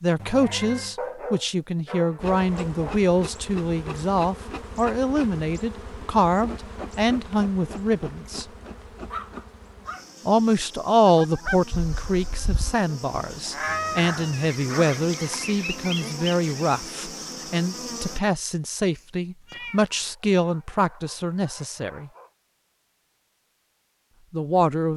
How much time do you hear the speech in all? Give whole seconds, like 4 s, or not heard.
21 s.